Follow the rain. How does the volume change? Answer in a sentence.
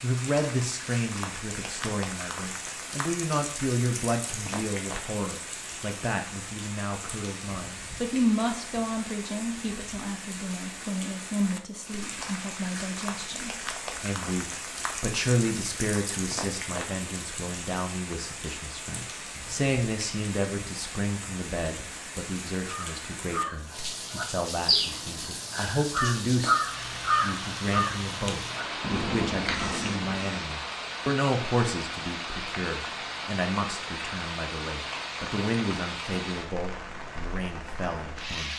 The volume of the rain stays about the same.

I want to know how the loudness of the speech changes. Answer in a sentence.
The volume of the speech stays about the same.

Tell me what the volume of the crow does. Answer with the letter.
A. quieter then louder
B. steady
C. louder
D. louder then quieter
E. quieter
D.